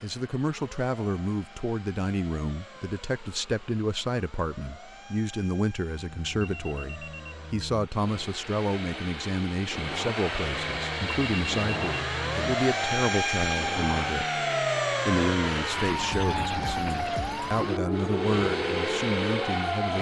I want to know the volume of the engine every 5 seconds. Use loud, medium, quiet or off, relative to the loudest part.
quiet, medium, loud, loud.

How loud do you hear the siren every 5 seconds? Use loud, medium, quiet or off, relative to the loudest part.
quiet, quiet, loud, loud.